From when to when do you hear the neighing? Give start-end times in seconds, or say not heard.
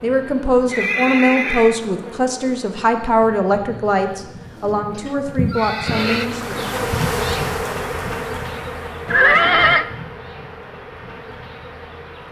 0.7-1.8, 4.4-6.3, 9.1-9.8.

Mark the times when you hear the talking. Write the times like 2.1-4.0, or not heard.
0.0-6.5.